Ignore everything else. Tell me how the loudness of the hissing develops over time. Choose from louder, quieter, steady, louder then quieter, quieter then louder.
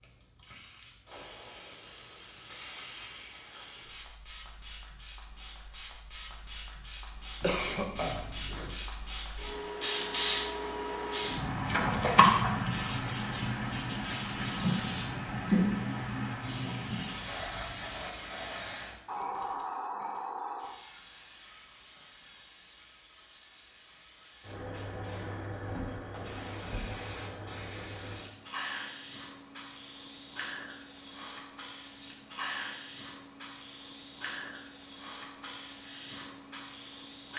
louder then quieter.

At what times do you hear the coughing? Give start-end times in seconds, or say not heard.
7.4-8.8.